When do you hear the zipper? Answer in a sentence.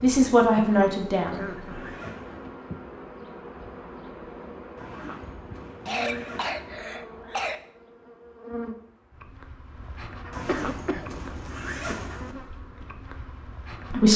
The zipper can be heard from 0.5 to 2.5 s, from 4.8 to 6.8 s and from 10.3 to 12.3 s.